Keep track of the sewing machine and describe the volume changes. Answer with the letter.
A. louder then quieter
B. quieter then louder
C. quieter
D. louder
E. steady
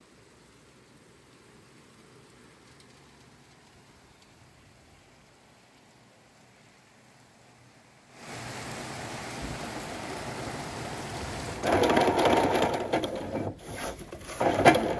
A.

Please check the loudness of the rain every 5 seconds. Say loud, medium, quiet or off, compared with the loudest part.
quiet, loud, loud.